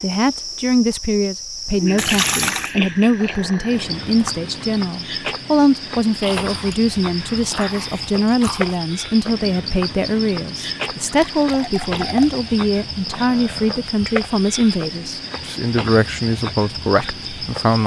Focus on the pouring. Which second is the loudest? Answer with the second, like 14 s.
2 s.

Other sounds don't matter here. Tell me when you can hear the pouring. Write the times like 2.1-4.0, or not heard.
1.9-2.8, 11.0-12.4.